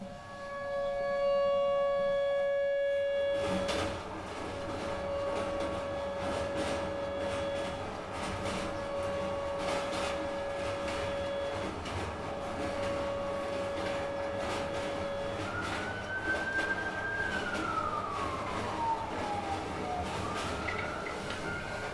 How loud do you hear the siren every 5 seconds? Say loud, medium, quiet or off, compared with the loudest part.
loud, medium, medium, medium, medium.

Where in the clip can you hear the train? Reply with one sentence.
The train can be heard from 0.0 to 21.8 s.